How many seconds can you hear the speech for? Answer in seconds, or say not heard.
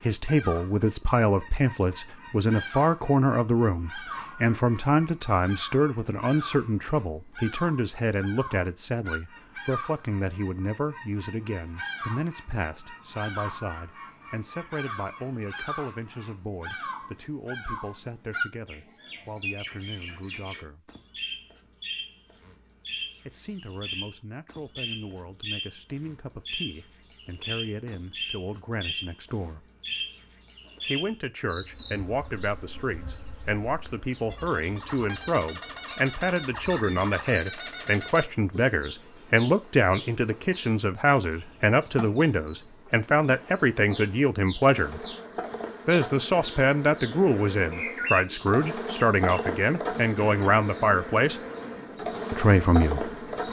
48 s.